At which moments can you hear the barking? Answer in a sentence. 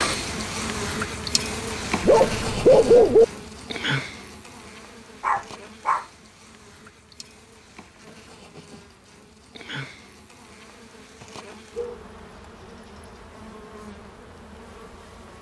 The barking can be heard from 2.0 to 3.2 s, from 5.2 to 6.0 s and from 11.5 to 12.8 s.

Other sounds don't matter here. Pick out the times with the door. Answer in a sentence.
You can't hear the door here.